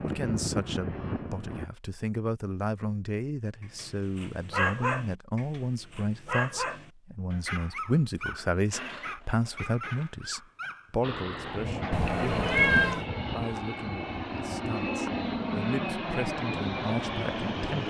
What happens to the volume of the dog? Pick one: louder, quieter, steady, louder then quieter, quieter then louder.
quieter.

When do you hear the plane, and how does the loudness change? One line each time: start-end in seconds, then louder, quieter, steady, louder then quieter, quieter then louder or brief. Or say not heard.
0.0-1.7 brief
11.0-17.8 steady.